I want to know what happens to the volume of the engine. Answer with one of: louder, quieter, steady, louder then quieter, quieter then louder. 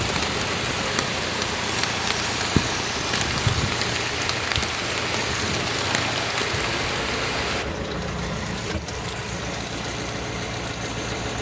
steady.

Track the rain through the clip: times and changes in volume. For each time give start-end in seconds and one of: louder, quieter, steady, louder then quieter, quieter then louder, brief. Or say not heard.
0.0-7.7 steady.